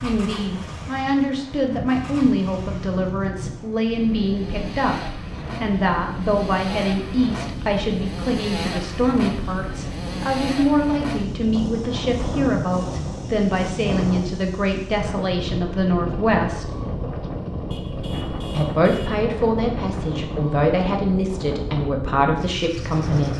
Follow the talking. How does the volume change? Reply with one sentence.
The loudness of the talking stays about the same.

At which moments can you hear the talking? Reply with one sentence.
The talking can be heard from 0.0 to 16.8 s and from 18.5 to 23.3 s.